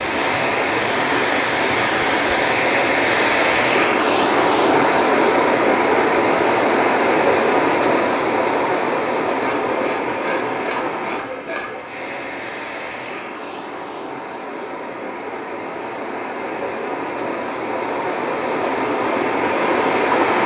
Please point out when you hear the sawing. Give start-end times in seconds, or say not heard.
9.3-11.8.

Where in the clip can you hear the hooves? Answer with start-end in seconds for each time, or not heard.
not heard.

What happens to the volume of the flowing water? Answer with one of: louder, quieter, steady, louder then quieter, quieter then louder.
quieter then louder.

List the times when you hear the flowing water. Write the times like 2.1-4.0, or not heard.
0.0-20.4.